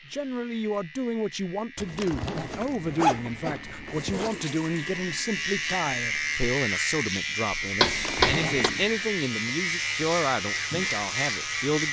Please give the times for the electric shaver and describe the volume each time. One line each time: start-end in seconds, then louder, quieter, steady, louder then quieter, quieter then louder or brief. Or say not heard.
0.0-11.8 louder.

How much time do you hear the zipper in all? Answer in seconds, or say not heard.
4 s.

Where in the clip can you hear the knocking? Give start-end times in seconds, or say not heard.
7.6-8.7.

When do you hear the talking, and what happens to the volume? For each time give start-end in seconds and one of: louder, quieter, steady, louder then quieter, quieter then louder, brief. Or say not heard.
0.1-11.8 steady.